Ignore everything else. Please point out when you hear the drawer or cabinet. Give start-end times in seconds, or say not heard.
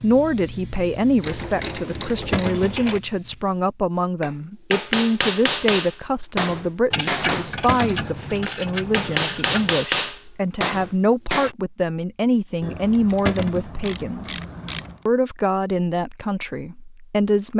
2.3-2.8, 7.7-8.2, 13.2-13.7.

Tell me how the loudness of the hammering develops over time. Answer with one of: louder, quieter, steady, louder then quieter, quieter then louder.
steady.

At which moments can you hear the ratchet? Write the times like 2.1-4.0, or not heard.
1.2-3.0, 6.9-9.8, 12.6-14.9.